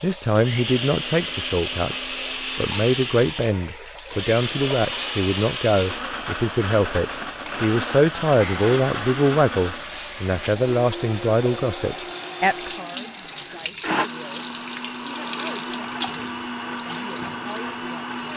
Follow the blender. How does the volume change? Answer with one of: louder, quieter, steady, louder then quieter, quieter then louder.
steady.